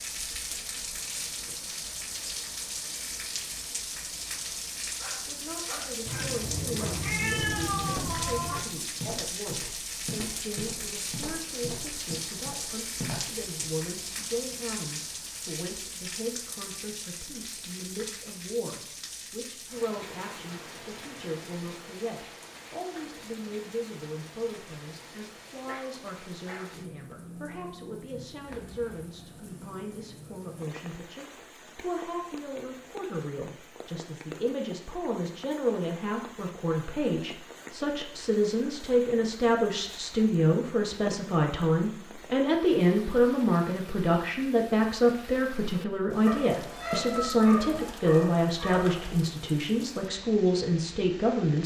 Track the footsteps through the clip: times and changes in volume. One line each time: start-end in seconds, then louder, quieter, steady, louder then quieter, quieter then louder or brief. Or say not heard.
7.2-13.7 steady.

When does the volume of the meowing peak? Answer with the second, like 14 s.
7 s.